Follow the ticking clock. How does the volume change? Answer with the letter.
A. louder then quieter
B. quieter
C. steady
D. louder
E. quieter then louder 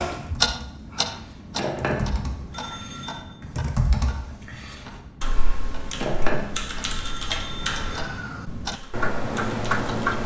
E.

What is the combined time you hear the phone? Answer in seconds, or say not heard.
5 s.